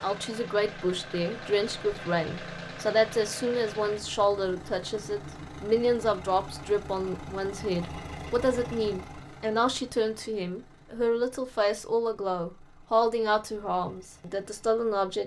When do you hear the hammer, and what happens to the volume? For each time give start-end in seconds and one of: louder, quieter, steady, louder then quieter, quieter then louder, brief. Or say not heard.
not heard.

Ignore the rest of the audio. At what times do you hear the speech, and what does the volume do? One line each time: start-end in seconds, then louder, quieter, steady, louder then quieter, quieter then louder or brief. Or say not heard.
0.0-15.2 steady.